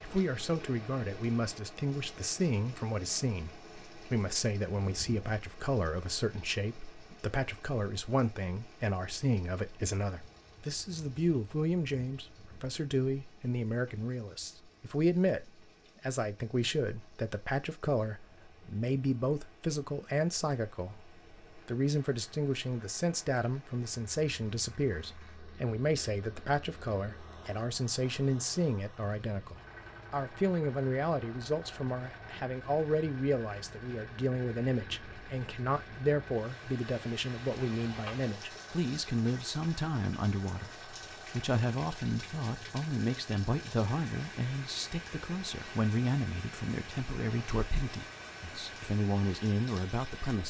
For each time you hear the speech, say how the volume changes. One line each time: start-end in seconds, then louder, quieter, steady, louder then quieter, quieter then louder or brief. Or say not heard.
0.0-50.4 steady.